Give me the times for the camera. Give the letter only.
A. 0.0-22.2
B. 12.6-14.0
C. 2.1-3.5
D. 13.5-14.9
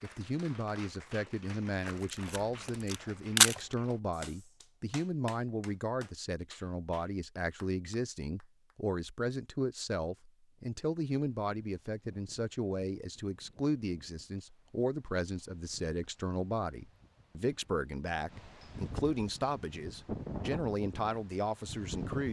C.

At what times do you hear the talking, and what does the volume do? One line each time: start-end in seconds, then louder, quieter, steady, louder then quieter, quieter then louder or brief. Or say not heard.
0.0-22.2 steady.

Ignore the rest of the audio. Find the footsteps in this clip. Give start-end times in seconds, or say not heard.
not heard.